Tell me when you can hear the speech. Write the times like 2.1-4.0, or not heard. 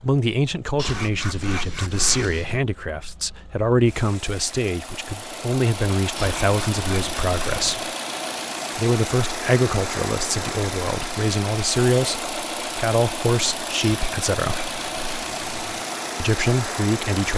0.0-7.8, 8.8-14.7, 16.1-17.3.